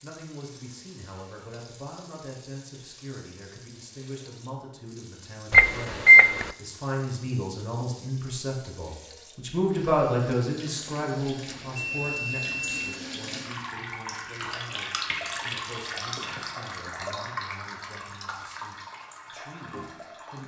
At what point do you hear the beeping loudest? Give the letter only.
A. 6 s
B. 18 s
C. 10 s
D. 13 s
A.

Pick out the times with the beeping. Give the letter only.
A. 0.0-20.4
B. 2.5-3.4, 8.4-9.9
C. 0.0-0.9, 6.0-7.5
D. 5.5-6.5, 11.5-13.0
D.